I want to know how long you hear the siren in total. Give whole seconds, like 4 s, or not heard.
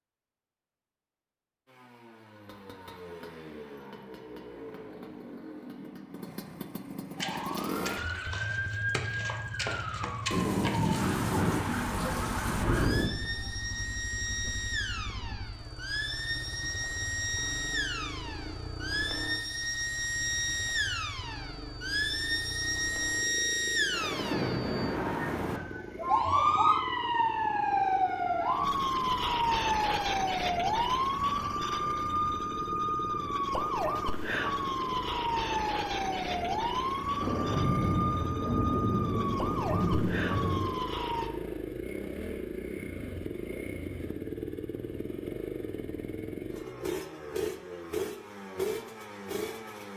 34 s.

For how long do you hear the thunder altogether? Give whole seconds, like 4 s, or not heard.
8 s.